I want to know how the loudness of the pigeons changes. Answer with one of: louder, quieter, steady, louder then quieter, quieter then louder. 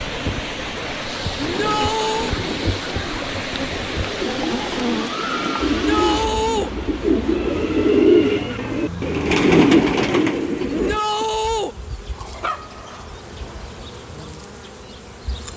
louder.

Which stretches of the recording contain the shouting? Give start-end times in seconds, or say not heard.
1.4-2.4, 5.7-6.7, 10.7-11.8.